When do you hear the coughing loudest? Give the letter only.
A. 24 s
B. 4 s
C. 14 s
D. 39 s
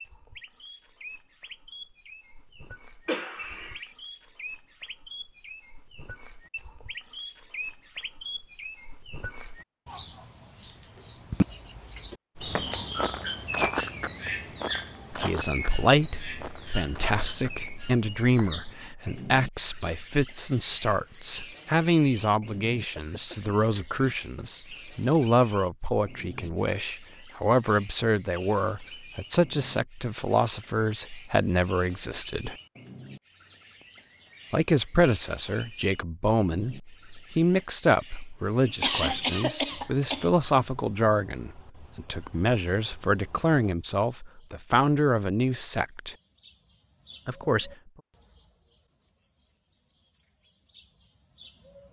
D.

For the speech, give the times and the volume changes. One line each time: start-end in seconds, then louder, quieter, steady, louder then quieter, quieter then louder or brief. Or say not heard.
15.1-32.5 steady
34.5-46.1 steady
47.2-47.7 brief.